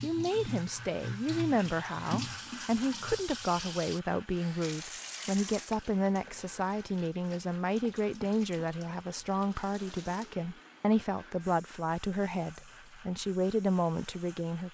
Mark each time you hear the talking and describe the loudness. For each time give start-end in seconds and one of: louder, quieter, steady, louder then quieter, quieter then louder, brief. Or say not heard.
0.0-14.6 steady.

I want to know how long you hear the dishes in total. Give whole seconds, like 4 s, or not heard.
not heard.